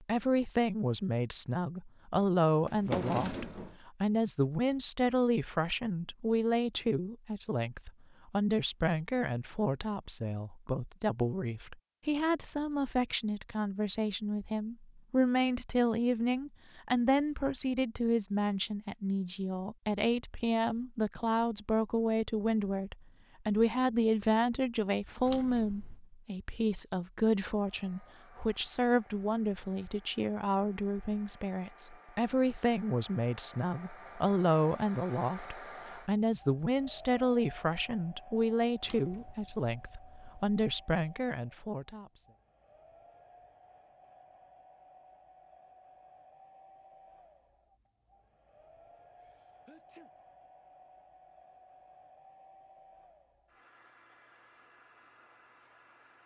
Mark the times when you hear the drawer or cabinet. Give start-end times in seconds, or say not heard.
2.6-3.8, 25.2-26.0, 38.8-40.9.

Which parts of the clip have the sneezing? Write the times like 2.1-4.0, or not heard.
49.2-50.1.